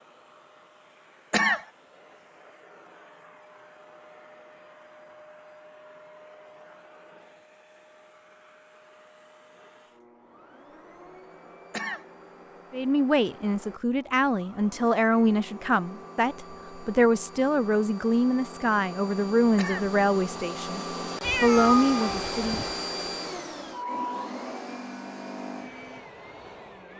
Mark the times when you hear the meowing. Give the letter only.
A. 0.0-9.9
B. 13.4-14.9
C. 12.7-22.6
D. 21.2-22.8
D.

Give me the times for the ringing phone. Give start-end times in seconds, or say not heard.
not heard.